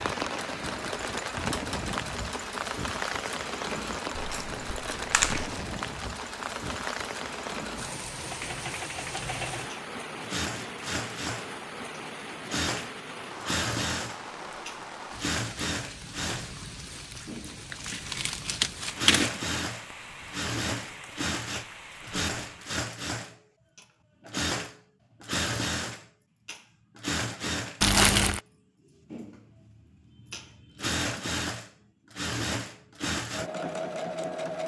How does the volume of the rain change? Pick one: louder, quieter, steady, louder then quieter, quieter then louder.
quieter.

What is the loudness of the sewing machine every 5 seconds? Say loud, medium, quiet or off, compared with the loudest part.
medium, medium, loud, loud, loud, loud, loud.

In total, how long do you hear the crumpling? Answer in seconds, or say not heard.
4 s.